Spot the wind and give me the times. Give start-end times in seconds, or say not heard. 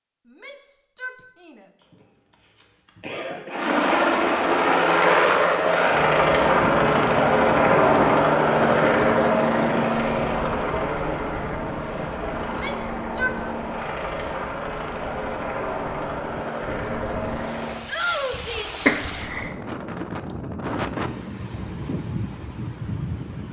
6.5-23.4.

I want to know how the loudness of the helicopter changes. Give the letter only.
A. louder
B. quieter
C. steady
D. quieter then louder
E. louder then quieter
B.